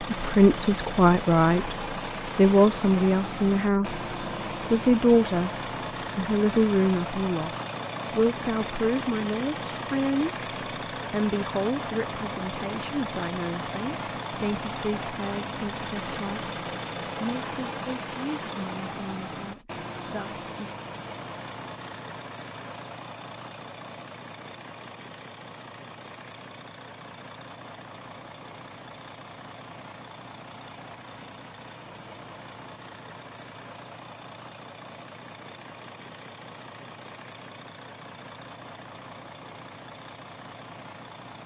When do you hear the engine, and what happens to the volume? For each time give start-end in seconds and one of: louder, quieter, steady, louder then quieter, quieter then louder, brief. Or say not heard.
0.0-41.4 quieter.